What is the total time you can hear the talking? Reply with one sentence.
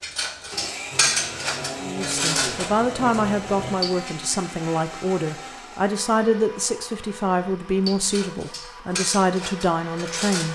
The talking can be heard for 9 seconds in total.